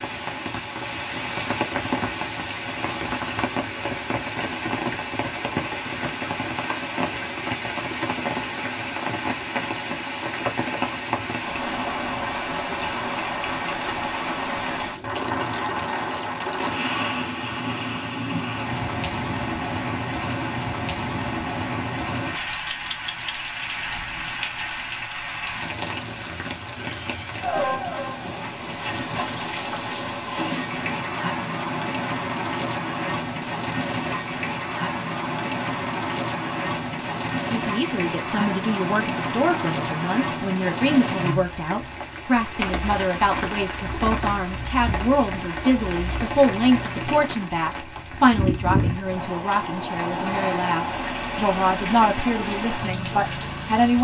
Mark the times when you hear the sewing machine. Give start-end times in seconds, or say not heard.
not heard.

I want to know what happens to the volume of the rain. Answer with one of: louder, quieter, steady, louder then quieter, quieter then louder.
steady.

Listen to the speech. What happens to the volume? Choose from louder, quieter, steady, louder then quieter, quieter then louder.
steady.